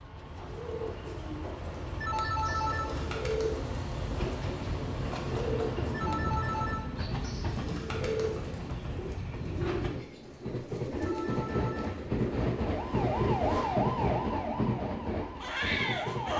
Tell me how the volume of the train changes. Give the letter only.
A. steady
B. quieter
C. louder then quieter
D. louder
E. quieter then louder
D.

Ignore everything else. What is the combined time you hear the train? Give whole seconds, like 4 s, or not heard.
16 s.